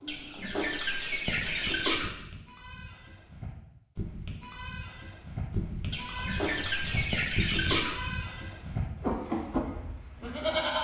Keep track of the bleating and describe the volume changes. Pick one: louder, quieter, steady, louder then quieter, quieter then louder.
louder.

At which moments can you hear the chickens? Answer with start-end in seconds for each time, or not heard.
0.1-2.1, 5.9-8.0.